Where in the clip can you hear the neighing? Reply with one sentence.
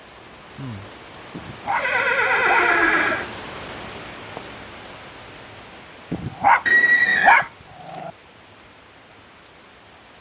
The neighing can be heard from 1.8 to 3.2 s and from 6.7 to 7.5 s.